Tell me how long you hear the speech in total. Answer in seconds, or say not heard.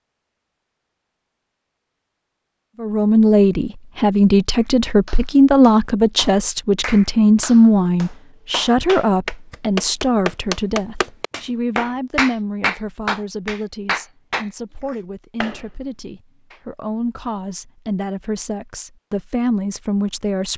18 s.